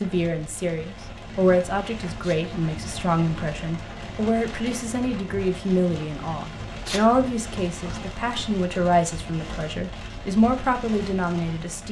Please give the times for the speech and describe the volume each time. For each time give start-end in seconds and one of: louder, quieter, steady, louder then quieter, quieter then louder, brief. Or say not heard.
0.0-11.8 steady.